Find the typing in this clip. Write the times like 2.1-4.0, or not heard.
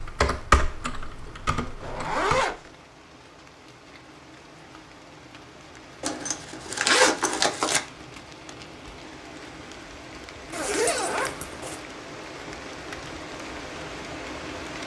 0.0-2.5.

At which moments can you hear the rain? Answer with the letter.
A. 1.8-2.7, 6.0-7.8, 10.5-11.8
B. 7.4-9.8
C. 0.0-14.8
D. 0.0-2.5
C.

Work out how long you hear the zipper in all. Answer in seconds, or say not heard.
4 s.